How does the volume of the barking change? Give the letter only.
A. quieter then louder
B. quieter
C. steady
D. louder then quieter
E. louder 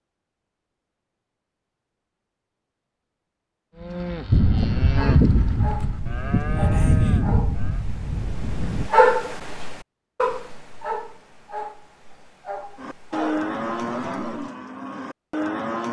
D.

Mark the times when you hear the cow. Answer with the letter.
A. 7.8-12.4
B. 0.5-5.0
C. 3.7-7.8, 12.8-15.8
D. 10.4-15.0
C.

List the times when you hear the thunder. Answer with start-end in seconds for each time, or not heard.
4.3-8.9.